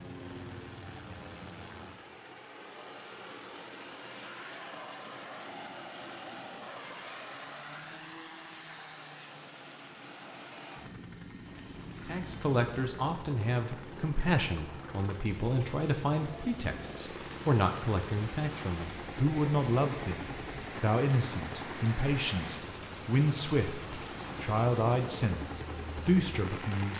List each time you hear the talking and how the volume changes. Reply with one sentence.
The talking can be heard from 12.1 to 26.9 s, at a steady volume.